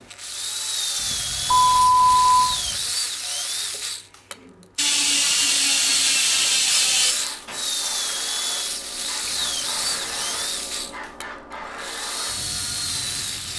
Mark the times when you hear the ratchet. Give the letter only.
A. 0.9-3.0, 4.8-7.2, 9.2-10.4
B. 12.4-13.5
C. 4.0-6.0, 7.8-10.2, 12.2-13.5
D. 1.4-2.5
A.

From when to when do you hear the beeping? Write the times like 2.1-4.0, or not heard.
1.4-2.5.